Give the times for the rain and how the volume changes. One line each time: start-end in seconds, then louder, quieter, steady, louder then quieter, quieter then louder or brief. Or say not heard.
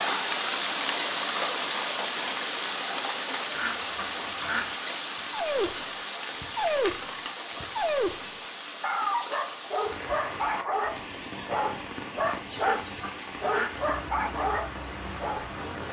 0.0-15.8 quieter.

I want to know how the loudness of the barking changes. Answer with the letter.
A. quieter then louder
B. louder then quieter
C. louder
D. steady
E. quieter
D.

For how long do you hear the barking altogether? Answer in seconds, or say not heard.
10 s.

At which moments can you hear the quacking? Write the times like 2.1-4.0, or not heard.
3.5-4.8, 12.6-13.8.